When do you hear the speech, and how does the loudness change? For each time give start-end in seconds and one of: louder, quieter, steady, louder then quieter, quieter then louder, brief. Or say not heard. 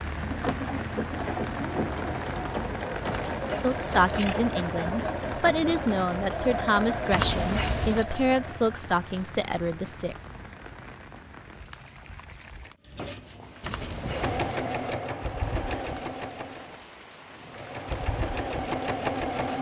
3.6-10.2 steady.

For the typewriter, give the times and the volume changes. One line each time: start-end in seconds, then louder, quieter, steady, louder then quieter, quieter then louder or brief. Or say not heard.
not heard.